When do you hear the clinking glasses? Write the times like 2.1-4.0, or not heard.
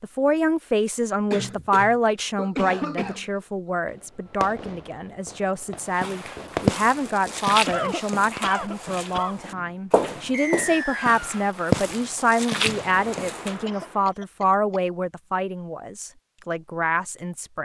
not heard.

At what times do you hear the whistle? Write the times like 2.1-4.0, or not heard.
10.3-11.4.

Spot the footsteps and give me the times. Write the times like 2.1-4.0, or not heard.
5.9-13.6.